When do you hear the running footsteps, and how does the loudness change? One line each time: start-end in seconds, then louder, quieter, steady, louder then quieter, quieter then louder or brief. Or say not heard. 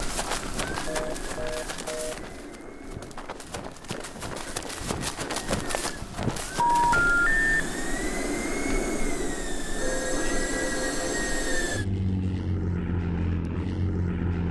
0.0-7.2 quieter then louder.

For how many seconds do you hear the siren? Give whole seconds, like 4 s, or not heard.
not heard.